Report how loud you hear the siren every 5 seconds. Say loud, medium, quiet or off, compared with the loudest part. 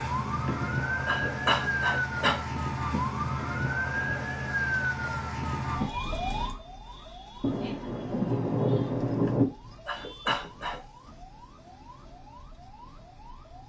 loud, medium, quiet.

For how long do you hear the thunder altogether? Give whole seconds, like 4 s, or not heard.
2 s.